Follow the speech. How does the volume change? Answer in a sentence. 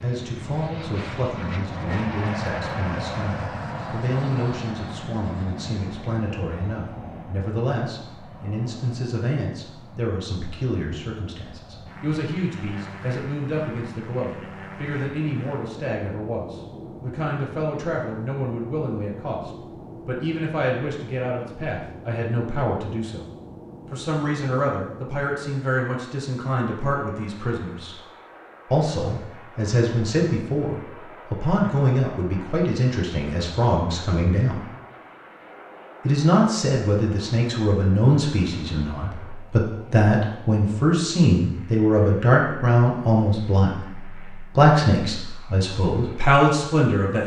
The volume of the speech goes up.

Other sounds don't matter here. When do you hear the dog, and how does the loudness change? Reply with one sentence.
The dog can't be heard in this clip.